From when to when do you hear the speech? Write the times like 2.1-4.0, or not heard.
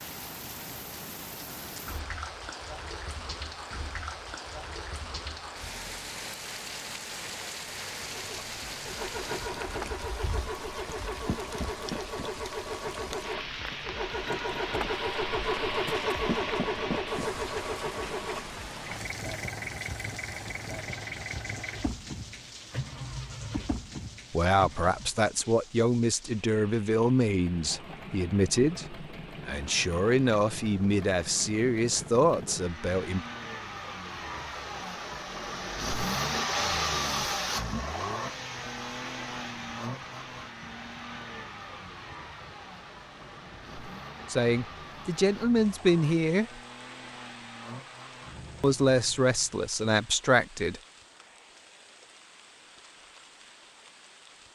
24.3-33.2, 44.3-46.6, 48.6-50.8.